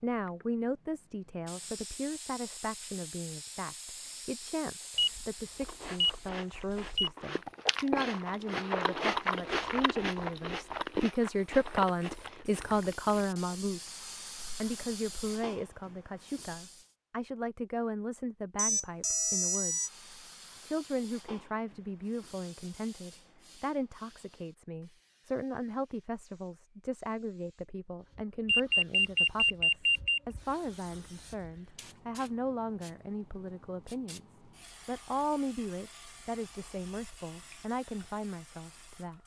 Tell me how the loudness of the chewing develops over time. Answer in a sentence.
The loudness of the chewing goes up, then down.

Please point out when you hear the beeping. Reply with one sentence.
The beeping can be heard from 5.0 to 7.1 s, from 18.6 to 19.9 s and from 28.4 to 30.2 s.